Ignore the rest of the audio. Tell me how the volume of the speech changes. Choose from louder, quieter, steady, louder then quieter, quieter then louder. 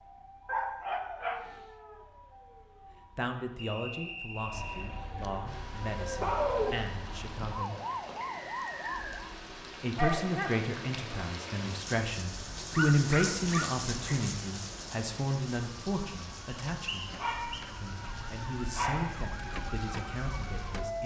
louder then quieter.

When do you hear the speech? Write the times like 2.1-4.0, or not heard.
3.1-7.8, 9.8-17.1, 17.7-21.0.